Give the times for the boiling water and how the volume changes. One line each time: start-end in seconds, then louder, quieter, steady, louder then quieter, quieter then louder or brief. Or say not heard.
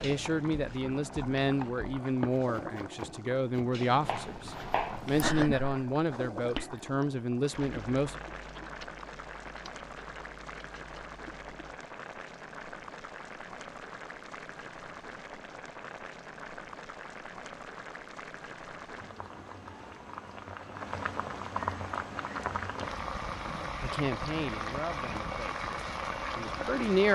0.0-27.1 louder.